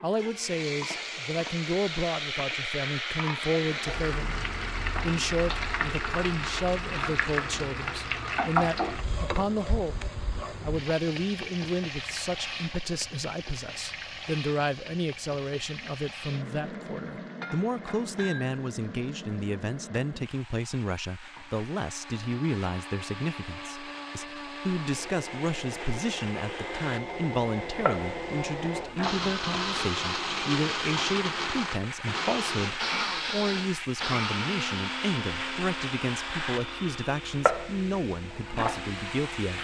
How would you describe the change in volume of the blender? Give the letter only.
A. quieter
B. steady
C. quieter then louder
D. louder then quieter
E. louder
E.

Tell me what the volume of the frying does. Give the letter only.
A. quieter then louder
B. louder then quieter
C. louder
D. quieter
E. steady
A.